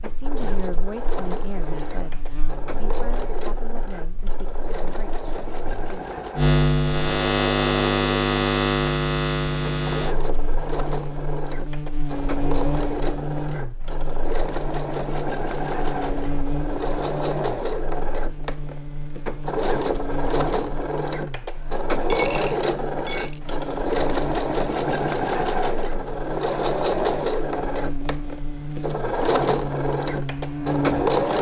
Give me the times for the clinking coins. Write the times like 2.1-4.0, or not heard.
22.1-23.4.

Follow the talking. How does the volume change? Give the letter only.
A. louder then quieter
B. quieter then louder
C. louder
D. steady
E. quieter
E.